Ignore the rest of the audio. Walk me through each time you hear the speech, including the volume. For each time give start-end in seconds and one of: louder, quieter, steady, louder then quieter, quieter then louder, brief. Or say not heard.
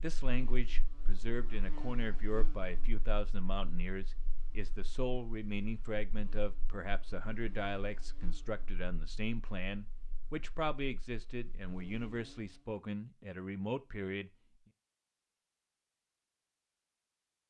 0.0-14.3 steady.